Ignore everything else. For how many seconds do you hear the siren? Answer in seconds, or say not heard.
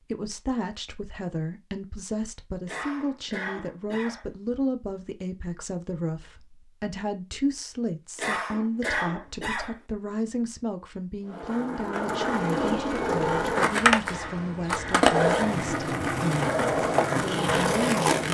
not heard.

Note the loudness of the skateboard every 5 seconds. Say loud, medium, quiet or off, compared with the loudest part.
off, off, loud, loud.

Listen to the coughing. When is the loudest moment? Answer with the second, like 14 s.
9 s.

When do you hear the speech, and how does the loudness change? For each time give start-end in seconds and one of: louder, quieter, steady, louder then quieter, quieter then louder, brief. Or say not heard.
0.0-16.6 steady
17.1-18.2 brief.